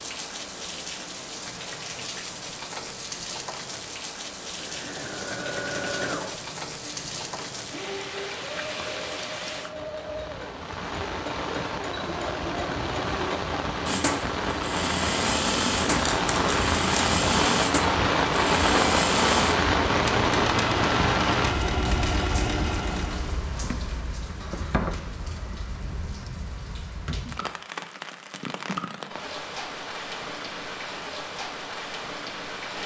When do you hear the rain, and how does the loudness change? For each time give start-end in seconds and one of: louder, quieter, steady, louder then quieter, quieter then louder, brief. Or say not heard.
0.0-32.8 louder then quieter.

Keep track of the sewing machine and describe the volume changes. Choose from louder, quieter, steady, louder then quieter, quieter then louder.
louder.